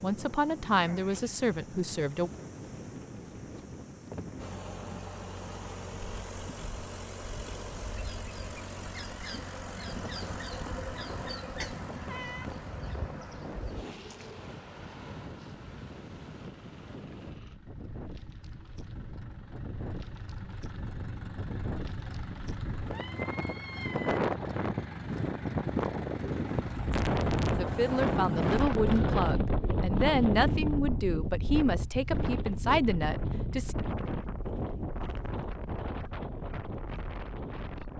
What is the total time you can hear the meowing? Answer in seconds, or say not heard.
3 s.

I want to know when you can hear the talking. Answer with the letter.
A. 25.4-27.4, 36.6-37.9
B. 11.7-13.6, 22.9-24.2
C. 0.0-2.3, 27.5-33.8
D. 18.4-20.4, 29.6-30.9
C.